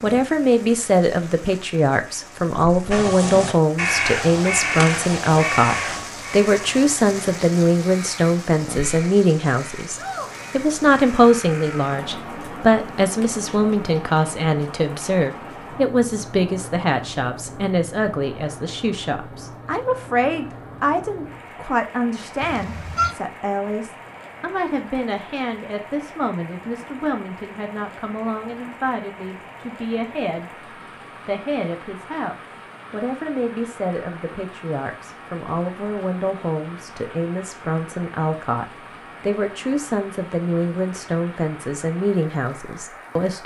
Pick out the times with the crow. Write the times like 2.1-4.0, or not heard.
2.9-11.9.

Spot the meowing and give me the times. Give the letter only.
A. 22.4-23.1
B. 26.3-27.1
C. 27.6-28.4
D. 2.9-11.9
A.